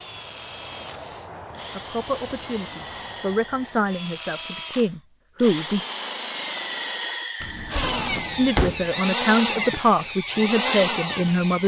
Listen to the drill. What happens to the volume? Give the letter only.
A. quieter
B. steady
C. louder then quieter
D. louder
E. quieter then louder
D.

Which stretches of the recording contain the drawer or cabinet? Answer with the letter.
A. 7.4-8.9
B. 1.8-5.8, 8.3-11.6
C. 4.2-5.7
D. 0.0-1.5
A.